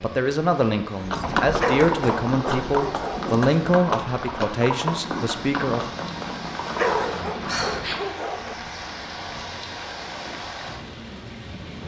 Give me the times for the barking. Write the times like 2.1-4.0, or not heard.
1.6-3.4, 6.8-8.6.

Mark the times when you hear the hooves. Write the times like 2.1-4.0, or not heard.
0.9-8.0.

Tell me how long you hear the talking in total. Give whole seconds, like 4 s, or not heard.
6 s.